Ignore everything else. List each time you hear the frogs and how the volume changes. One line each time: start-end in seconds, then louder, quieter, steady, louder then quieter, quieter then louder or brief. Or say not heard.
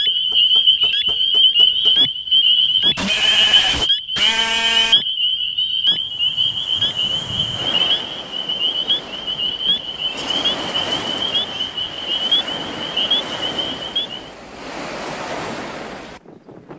0.0-14.2 quieter.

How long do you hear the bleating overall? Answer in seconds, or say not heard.
4 s.